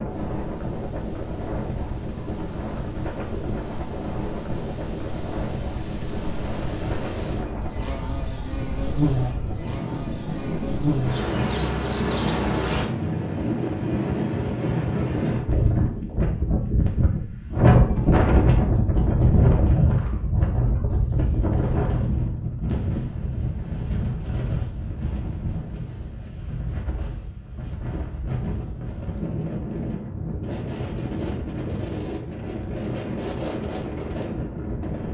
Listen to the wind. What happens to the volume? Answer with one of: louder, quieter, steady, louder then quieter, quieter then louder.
louder then quieter.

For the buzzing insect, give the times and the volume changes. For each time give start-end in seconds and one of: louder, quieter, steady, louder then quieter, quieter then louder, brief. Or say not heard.
0.0-12.8 louder.